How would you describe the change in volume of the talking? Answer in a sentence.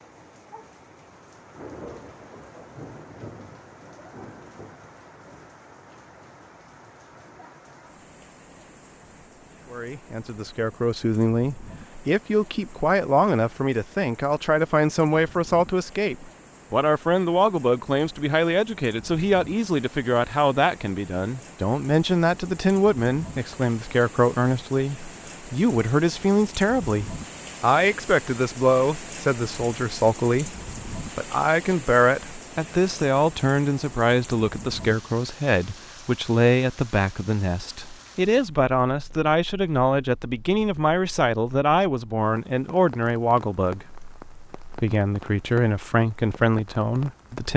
The loudness of the talking stays about the same.